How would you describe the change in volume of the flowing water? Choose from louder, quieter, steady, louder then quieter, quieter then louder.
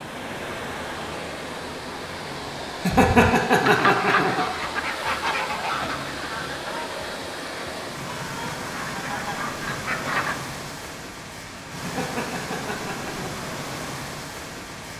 steady.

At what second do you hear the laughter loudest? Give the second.
3 s.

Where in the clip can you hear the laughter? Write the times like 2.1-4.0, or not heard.
2.9-4.7, 11.8-13.4.